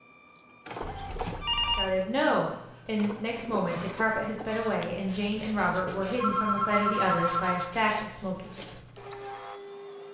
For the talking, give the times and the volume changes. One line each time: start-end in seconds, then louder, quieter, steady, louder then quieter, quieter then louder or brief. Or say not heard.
1.8-8.7 steady.